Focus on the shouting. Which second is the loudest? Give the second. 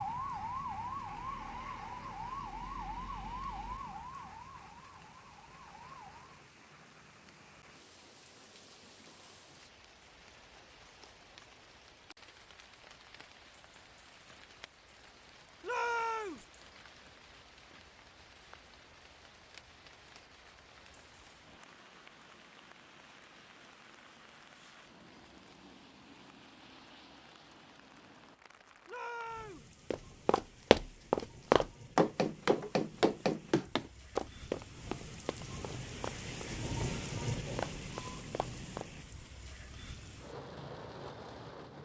16 s.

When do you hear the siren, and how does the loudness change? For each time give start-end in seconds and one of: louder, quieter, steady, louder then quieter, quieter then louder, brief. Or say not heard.
0.0-6.4 quieter.